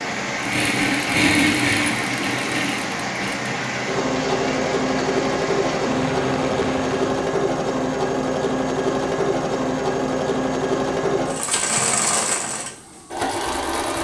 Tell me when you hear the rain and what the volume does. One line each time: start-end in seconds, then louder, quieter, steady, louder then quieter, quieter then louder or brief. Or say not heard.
0.0-7.2 steady.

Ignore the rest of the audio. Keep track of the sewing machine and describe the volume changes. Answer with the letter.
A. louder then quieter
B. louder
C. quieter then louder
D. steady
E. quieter
D.